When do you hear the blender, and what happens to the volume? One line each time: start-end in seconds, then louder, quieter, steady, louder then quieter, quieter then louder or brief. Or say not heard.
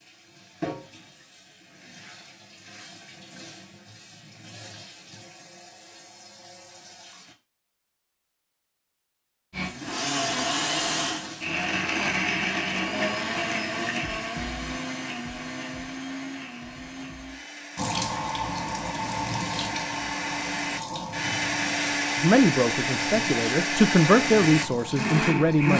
9.5-25.7 quieter then louder.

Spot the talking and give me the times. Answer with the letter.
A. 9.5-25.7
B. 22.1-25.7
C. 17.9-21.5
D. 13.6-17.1
B.